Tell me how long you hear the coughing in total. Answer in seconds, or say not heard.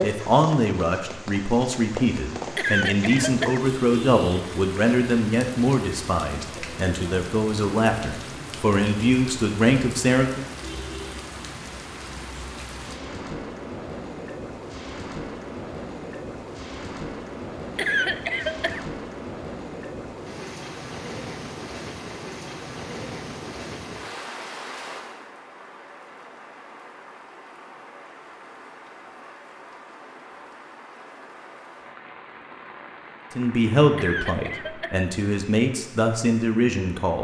3 s.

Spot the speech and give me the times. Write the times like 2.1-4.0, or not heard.
0.0-10.4, 33.4-37.2.